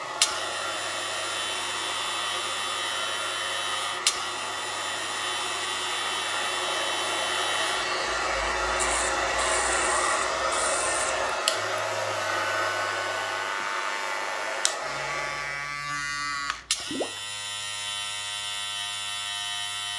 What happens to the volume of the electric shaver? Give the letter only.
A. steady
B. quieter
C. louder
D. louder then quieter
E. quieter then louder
A.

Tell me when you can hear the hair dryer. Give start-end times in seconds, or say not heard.
0.0-15.8.